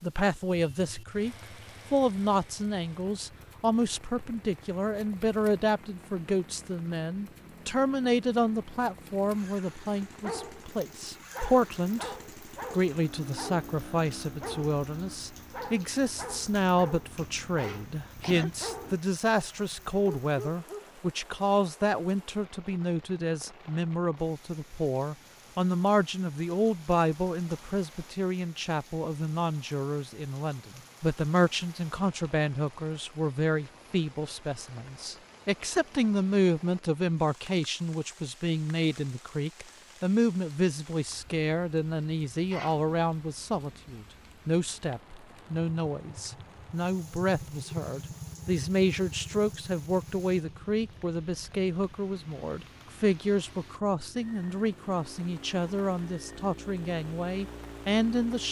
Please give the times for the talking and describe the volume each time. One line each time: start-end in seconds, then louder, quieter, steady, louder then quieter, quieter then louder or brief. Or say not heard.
0.0-58.4 steady.